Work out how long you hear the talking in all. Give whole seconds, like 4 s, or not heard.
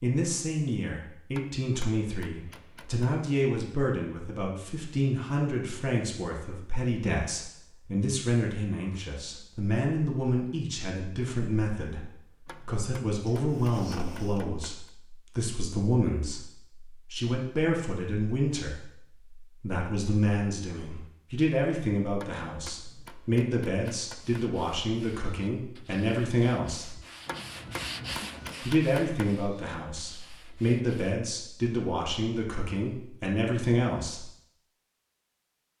33 s.